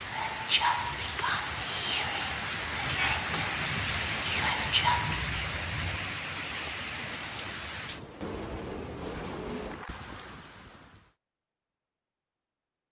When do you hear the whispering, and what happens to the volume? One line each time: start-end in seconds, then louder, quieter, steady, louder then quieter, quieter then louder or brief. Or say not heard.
0.0-5.3 quieter then louder.